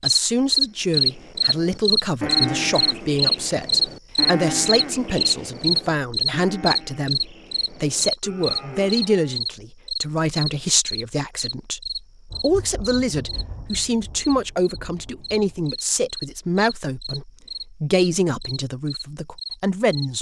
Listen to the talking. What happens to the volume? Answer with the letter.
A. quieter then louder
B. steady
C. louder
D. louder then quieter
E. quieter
B.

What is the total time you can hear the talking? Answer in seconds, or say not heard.
20 s.